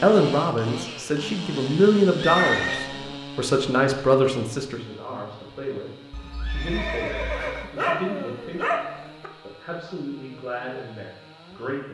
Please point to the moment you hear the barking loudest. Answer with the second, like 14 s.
8 s.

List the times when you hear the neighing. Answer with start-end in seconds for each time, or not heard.
2.1-2.9, 6.1-7.7.